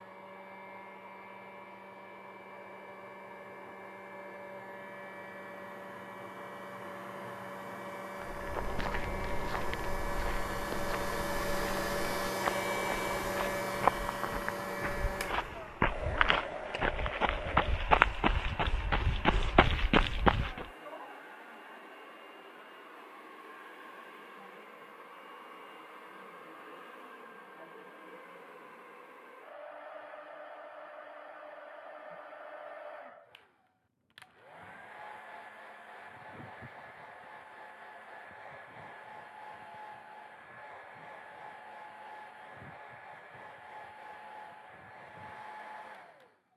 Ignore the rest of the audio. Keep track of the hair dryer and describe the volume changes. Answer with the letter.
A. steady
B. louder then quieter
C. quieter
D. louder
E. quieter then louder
B.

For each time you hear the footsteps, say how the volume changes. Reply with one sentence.
You can hear the footsteps from 8.2 to 20.6 s, getting louder.